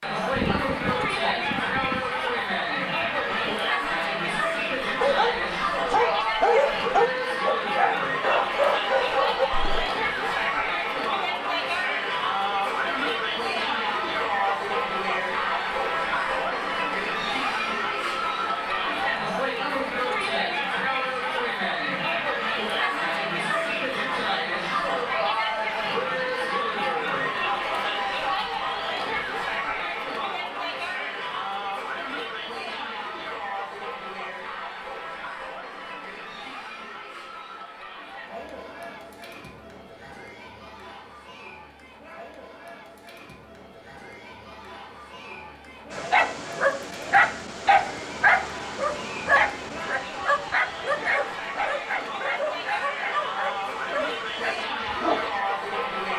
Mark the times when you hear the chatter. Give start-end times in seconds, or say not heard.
0.0-56.1.